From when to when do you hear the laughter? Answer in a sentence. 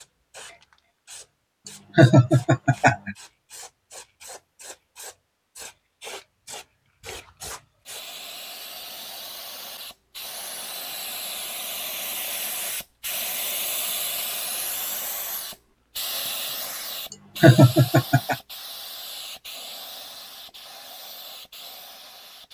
You can hear the laughter from 1.9 to 3.1 s and from 17.4 to 18.4 s.